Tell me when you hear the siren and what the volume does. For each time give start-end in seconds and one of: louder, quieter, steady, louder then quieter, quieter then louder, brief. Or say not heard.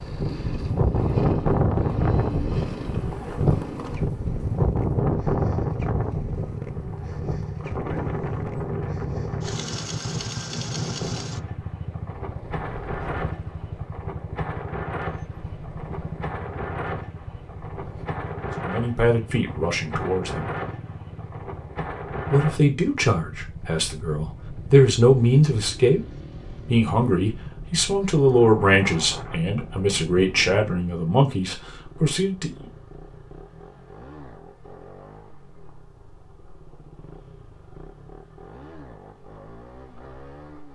not heard.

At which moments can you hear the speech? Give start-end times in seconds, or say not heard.
18.6-20.6, 22.3-26.0, 26.6-32.6.